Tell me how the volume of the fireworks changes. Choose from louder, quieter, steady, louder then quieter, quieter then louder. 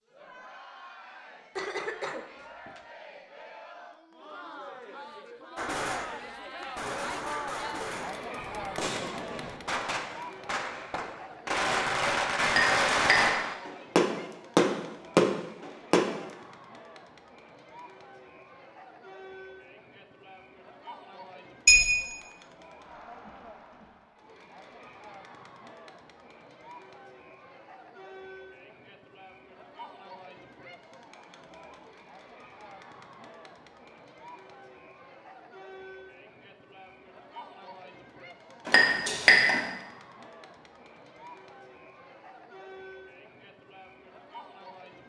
louder.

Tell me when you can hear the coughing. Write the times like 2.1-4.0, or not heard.
1.6-2.8.